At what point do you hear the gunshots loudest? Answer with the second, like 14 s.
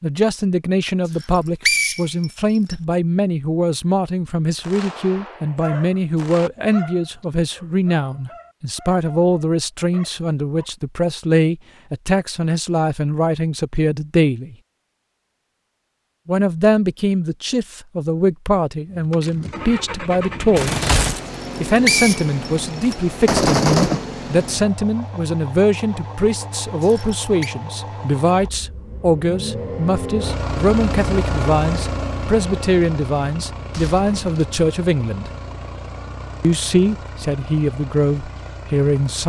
24 s.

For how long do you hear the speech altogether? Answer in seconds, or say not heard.
36 s.